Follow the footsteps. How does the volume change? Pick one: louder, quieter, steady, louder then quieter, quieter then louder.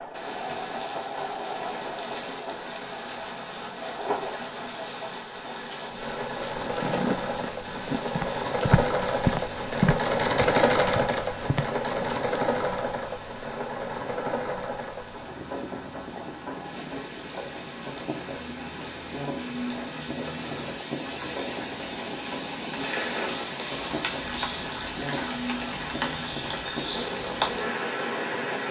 louder then quieter.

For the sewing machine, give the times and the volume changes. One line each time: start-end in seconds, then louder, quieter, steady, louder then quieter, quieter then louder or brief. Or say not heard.
0.0-28.6 louder then quieter.